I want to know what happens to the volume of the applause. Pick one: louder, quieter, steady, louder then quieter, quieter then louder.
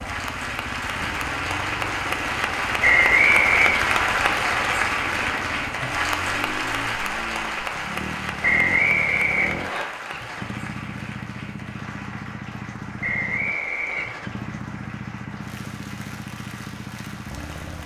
quieter.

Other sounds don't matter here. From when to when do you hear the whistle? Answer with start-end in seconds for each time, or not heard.
2.8-3.8, 8.4-9.8, 13.0-14.1.